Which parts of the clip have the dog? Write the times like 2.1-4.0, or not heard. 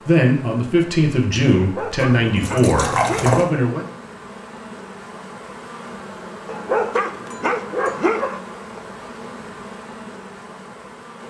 1.6-3.4, 6.5-8.4.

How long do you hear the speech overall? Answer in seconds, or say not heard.
4 s.